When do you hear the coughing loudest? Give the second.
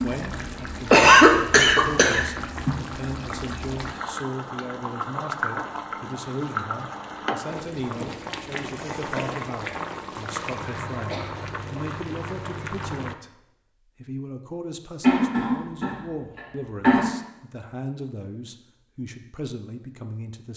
1 s.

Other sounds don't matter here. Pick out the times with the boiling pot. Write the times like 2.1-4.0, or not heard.
0.0-13.2.